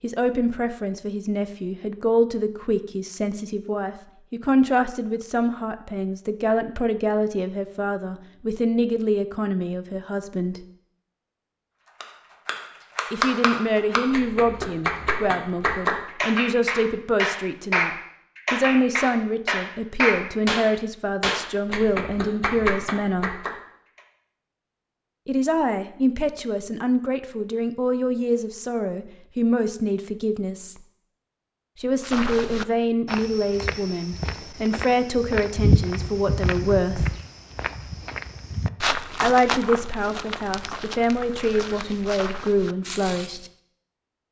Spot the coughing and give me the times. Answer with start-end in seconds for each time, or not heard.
not heard.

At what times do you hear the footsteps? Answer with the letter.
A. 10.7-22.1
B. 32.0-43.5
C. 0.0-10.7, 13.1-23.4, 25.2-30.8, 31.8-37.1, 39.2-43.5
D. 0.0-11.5
B.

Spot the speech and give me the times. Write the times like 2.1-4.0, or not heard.
0.0-10.7, 13.1-23.4, 25.2-30.8, 31.8-37.1, 39.2-43.5.